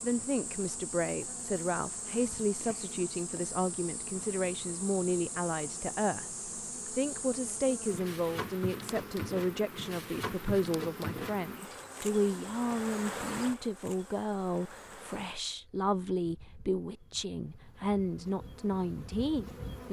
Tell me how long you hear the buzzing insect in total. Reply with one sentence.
You can hear the buzzing insect for 20 seconds altogether.